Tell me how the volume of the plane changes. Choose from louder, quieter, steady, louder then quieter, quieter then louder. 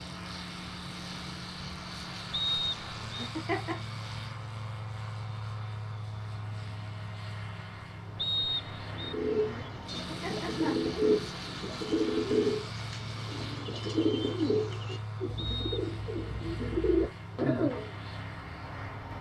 steady.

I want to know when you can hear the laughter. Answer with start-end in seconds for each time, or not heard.
3.1-3.8, 10.1-10.9.